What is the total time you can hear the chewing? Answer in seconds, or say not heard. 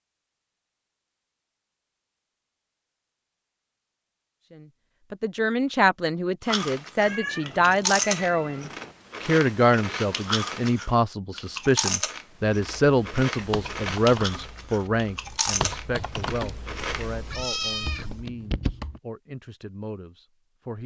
11 s.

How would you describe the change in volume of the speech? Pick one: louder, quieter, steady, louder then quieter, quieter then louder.
quieter.